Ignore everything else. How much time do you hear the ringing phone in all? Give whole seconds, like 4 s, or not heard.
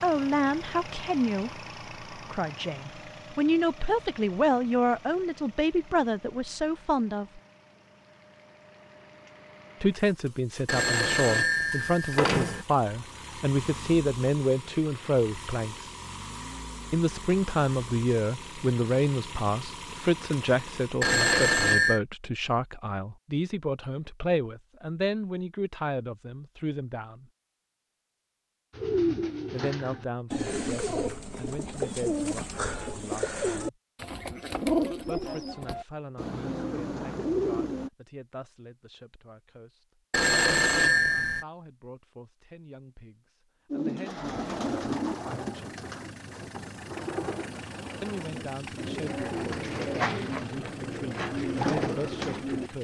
4 s.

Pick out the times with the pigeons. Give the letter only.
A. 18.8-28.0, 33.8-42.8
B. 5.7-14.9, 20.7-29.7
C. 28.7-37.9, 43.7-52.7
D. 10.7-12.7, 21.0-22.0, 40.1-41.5
C.